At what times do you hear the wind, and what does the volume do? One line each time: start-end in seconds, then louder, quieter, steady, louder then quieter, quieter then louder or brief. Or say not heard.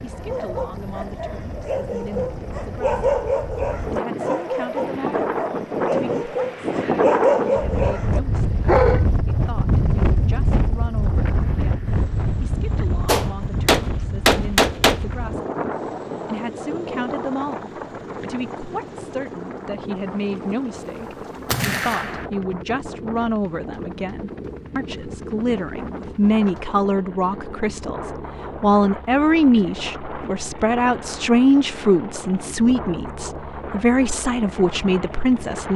0.0-35.7 quieter.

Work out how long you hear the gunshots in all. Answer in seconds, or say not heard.
3 s.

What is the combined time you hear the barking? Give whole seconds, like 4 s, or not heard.
9 s.